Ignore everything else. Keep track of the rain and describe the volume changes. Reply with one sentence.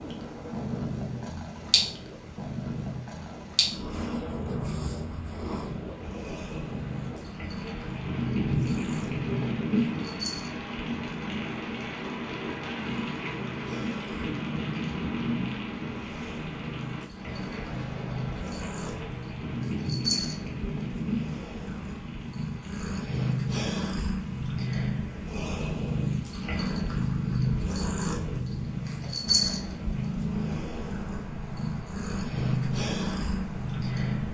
The loudness of the rain goes up, then down.